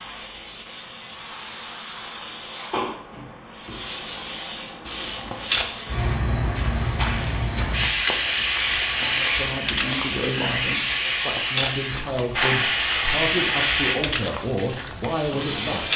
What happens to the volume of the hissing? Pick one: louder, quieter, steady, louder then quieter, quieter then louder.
louder.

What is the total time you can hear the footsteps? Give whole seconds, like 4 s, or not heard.
11 s.